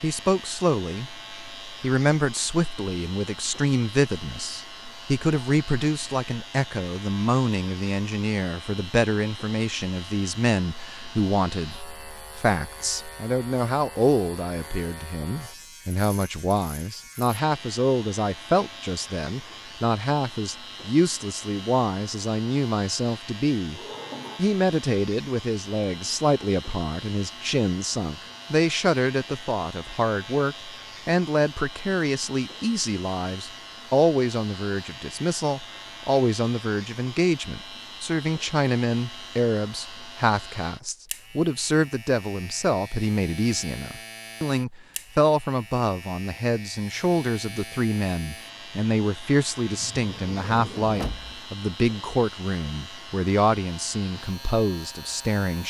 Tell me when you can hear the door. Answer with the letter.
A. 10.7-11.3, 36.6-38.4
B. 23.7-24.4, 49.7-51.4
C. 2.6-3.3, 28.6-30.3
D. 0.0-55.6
B.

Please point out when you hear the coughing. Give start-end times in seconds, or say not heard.
not heard.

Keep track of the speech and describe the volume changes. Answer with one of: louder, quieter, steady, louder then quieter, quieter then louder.
steady.